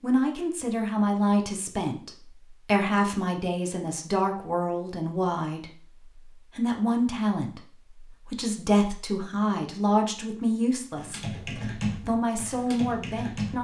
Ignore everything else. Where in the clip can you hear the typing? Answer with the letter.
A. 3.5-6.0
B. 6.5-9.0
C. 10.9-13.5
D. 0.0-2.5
C.